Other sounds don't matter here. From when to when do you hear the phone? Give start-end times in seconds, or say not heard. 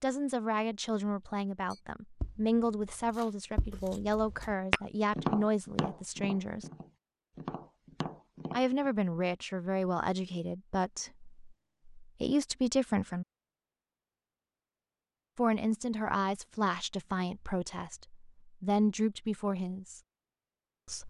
not heard.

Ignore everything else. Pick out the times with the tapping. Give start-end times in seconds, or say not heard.
1.7-8.9.